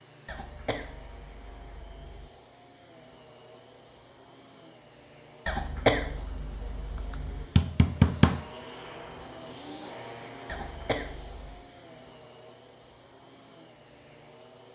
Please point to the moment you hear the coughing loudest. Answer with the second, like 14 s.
6 s.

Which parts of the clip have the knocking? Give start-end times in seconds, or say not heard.
7.1-8.4.